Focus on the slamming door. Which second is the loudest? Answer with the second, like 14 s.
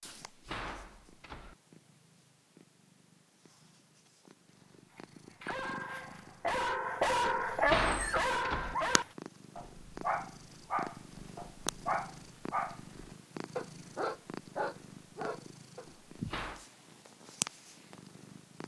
8 s.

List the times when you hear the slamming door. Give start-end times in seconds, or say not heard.
0.0-1.6, 7.2-8.8, 15.8-16.6.